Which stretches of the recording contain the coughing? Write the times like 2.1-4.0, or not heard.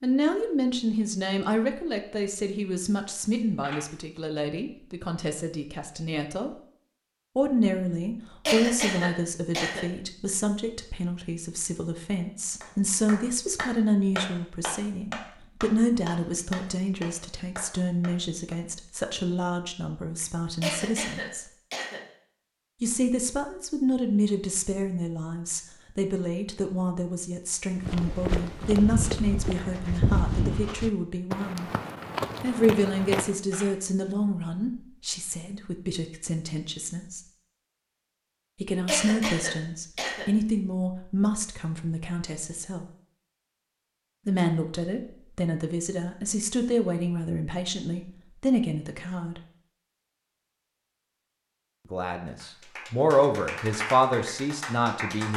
8.4-9.8, 20.6-22.0, 38.9-40.2.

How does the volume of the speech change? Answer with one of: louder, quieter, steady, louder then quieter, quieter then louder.
steady.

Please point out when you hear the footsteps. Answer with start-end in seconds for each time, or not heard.
27.8-33.4.